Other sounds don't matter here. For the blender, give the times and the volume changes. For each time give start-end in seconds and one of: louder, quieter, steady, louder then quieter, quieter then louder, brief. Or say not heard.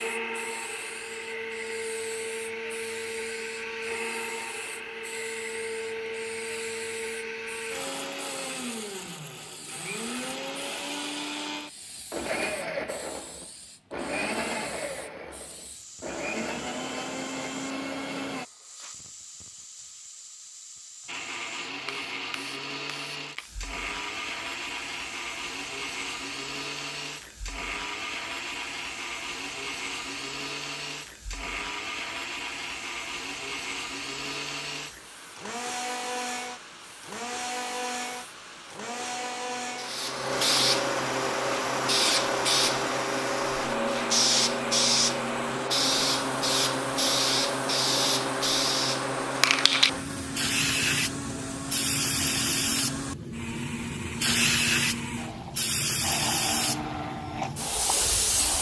0.0-18.4 steady
21.1-58.5 steady.